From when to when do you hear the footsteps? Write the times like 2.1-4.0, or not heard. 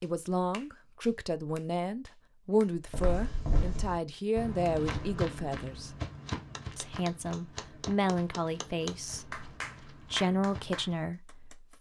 2.9-11.0.